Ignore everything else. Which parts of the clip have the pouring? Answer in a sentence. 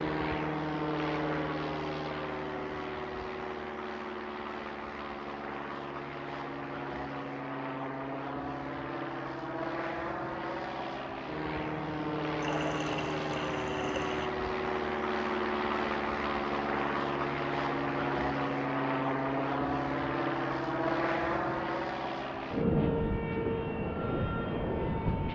The pouring can be heard from 11.8 to 14.3 s.